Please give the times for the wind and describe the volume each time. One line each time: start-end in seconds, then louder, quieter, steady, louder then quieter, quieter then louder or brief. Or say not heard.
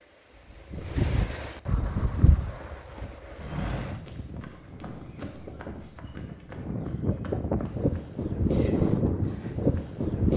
0.0-10.3 quieter then louder.